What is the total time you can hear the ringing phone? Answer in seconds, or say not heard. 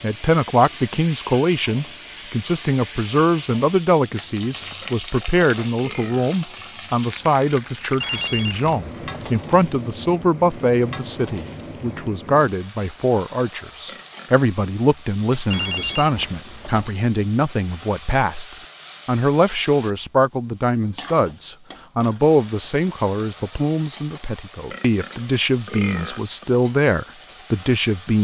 3 s.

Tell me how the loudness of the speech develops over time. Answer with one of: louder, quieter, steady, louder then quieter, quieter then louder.
steady.